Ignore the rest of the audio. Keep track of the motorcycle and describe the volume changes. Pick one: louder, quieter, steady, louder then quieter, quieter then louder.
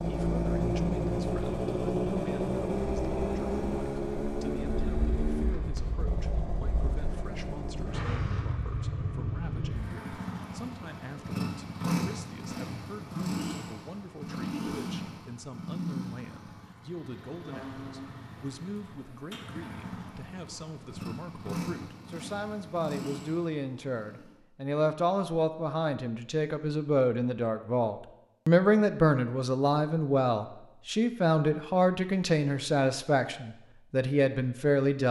quieter.